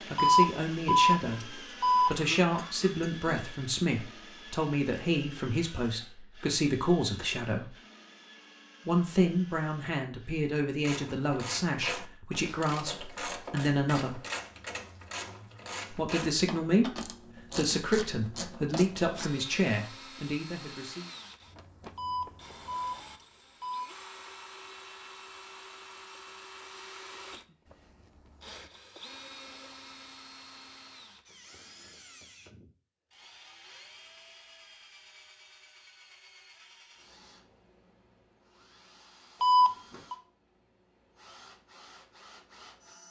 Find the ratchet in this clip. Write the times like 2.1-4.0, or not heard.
10.8-19.3.